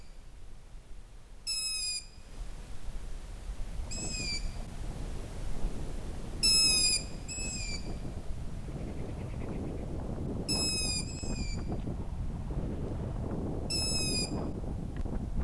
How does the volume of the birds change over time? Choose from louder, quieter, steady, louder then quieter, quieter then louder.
louder then quieter.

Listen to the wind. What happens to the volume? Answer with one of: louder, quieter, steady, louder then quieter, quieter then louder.
louder.